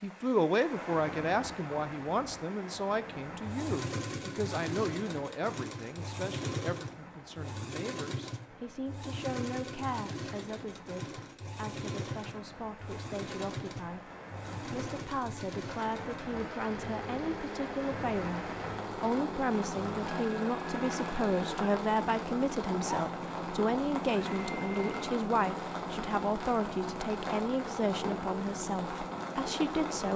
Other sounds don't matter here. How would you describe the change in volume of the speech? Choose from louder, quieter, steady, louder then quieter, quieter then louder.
quieter then louder.